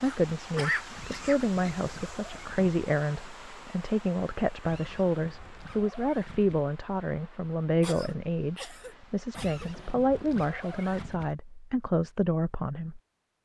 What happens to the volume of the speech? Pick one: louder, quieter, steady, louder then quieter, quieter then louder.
steady.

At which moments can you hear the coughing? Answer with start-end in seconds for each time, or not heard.
0.0-1.8, 7.8-9.7.